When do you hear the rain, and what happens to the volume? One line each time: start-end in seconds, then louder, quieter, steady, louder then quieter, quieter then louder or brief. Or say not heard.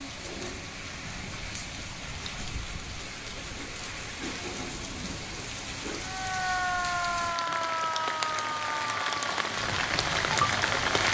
0.0-11.0 louder.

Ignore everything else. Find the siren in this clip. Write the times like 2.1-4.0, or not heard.
5.9-11.0.